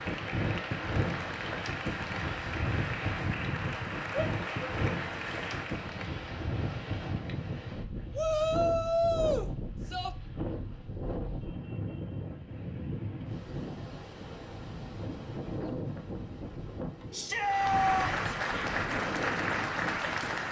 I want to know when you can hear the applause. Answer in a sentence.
The applause can be heard from 0.0 to 6.0 s and from 17.4 to 20.4 s.